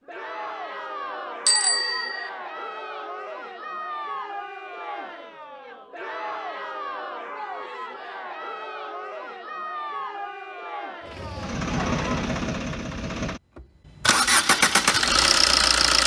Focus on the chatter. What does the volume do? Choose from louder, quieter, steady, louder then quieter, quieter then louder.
steady.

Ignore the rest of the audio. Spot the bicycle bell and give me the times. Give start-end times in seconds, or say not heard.
1.4-2.3.